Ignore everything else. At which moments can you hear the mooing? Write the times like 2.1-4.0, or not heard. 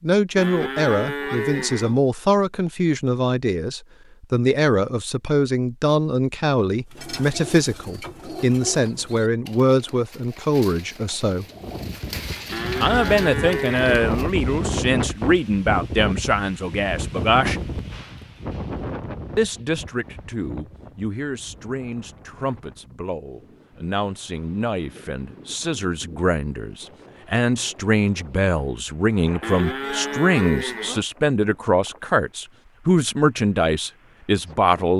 0.3-2.0, 12.5-13.9, 29.4-31.1.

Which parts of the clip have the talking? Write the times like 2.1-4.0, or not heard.
0.0-11.4, 12.8-17.6, 19.4-34.9.